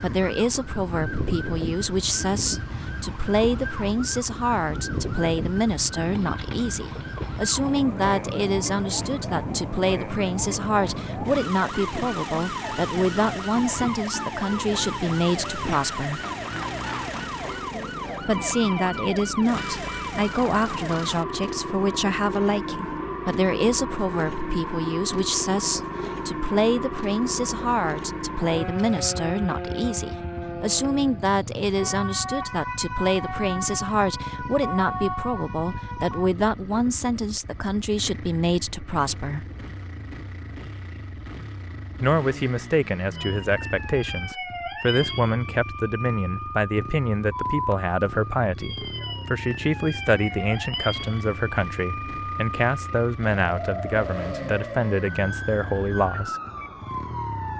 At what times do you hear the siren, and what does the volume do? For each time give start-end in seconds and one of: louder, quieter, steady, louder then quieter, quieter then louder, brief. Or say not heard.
0.0-36.4 steady
43.1-57.5 steady.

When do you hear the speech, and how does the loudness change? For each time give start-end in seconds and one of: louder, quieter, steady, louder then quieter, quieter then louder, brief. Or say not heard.
0.0-16.2 steady
18.2-39.5 steady
42.0-56.4 steady.